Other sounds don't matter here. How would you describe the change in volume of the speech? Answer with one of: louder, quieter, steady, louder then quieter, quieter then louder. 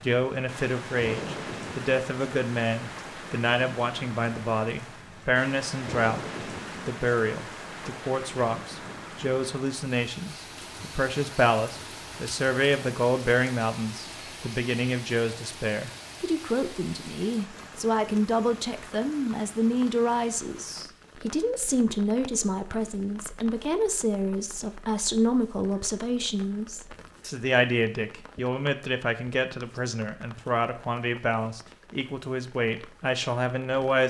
steady.